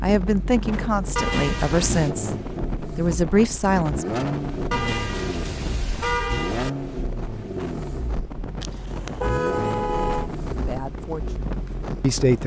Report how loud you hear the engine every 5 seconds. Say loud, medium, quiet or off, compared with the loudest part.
loud, loud, medium.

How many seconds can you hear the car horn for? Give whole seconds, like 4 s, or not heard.
5 s.